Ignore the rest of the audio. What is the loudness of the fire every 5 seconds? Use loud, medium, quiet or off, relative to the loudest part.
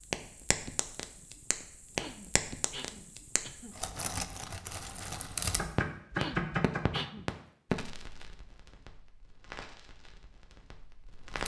loud, loud, medium.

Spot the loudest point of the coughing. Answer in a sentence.
The loudest moment of the coughing is at 7 seconds.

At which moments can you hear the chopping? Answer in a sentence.
The chopping can be heard from 5.4 to 7.0 s.